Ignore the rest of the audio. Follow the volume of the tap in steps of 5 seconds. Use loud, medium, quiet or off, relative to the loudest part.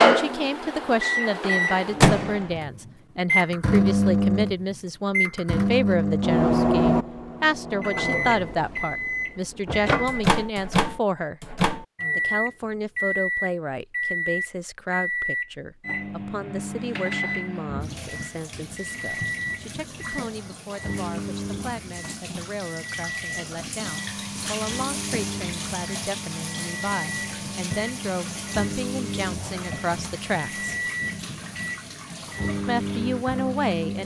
off, off, off, medium, loud, loud, medium.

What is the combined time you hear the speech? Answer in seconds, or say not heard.
31 s.